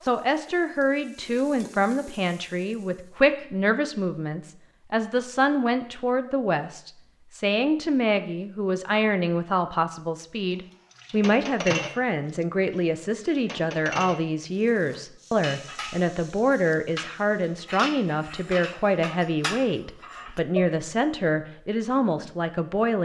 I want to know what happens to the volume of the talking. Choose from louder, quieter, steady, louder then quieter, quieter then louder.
steady.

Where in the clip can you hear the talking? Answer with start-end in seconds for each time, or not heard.
0.0-23.0.